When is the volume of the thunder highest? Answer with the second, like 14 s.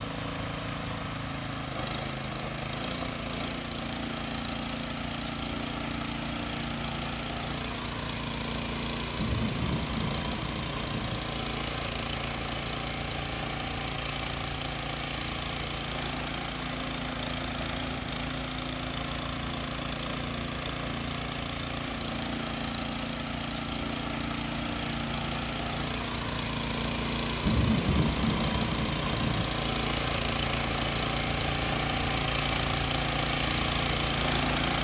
28 s.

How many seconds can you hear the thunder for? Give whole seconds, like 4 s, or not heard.
4 s.